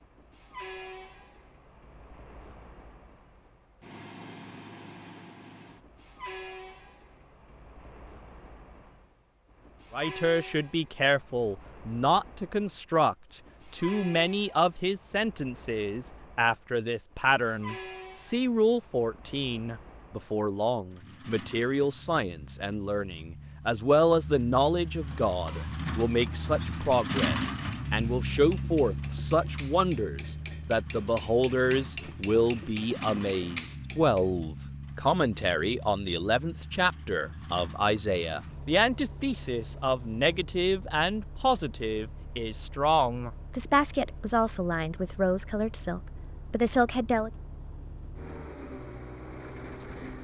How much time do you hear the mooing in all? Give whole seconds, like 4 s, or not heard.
not heard.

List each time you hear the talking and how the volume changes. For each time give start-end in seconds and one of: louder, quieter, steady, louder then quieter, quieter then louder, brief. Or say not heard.
9.9-47.3 steady.